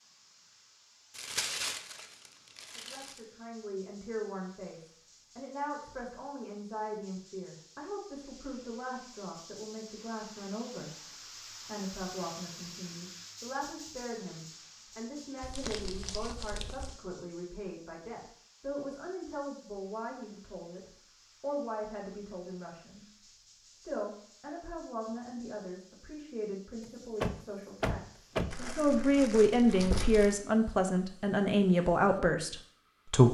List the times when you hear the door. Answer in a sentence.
The door can be heard from 27.2 to 28.6 s.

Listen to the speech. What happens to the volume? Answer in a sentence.
The volume of the speech goes up.